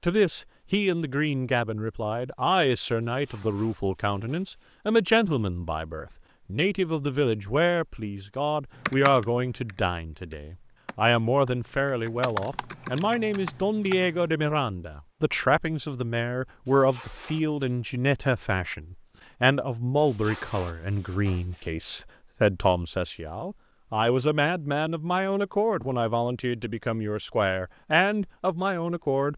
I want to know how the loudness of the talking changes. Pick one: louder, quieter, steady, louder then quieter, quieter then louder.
steady.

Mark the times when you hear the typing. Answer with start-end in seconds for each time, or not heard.
8.8-14.2.